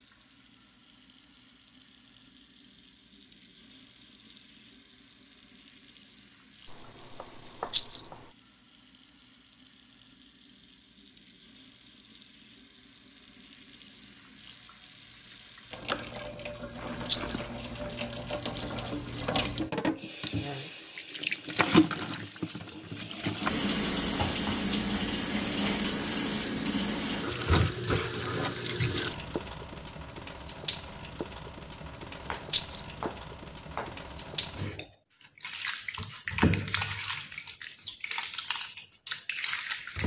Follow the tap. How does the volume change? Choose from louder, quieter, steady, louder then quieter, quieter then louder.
louder.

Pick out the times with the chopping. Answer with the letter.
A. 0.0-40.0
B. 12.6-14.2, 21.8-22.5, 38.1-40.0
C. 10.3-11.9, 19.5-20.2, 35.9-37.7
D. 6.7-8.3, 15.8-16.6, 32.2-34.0
D.